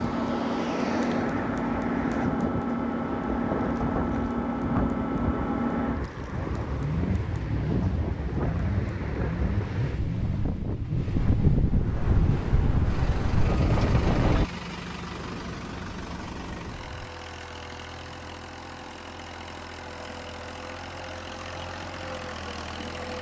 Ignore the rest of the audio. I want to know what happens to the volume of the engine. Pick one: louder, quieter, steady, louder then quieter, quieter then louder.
quieter.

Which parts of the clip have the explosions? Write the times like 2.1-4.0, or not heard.
15.1-17.1.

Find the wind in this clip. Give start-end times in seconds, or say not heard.
0.0-14.4.